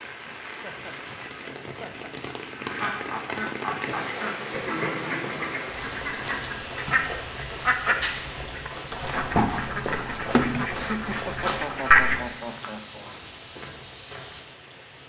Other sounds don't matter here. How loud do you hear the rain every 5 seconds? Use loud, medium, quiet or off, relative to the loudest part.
loud, loud, medium.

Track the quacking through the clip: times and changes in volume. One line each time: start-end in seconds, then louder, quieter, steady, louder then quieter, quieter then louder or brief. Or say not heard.
2.5-12.4 louder.